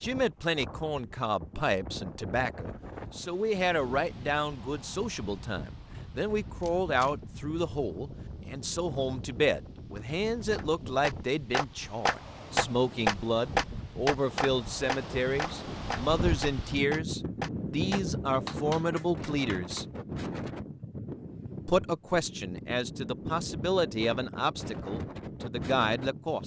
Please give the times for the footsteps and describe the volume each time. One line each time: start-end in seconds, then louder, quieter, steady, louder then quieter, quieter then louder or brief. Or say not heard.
not heard.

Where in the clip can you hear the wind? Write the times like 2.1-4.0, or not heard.
0.0-26.4.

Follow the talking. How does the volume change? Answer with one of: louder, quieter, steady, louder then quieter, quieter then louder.
steady.